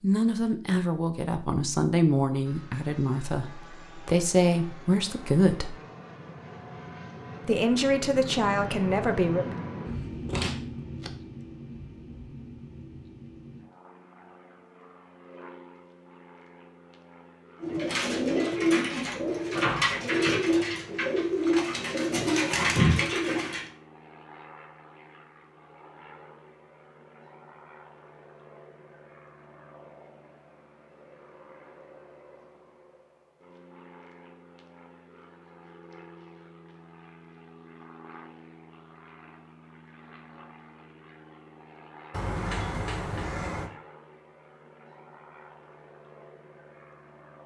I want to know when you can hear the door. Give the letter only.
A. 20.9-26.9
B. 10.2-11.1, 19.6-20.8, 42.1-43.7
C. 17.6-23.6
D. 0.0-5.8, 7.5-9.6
B.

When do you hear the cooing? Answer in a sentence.
The cooing can be heard from 17.6 to 23.6 s.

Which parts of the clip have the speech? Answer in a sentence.
You can hear the speech from 0.0 to 5.8 s and from 7.5 to 9.6 s.